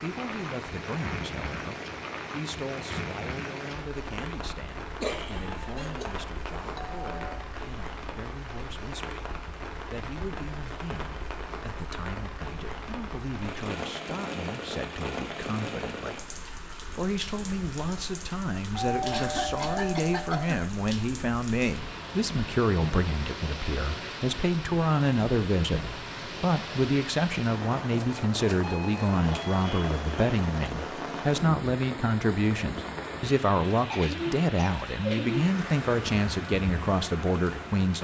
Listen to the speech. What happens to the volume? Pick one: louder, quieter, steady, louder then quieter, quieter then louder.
louder.